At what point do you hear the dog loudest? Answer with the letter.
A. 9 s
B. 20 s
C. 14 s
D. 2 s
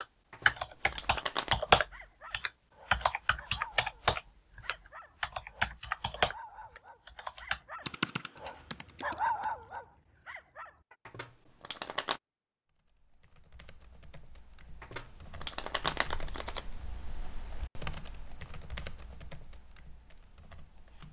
A.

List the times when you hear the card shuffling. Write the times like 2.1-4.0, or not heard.
0.3-1.6, 11.1-12.2, 14.8-16.6.